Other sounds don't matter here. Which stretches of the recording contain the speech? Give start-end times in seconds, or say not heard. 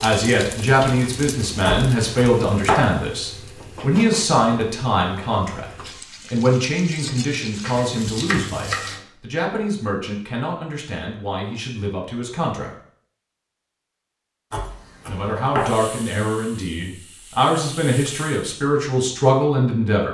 0.0-12.7, 15.1-20.0.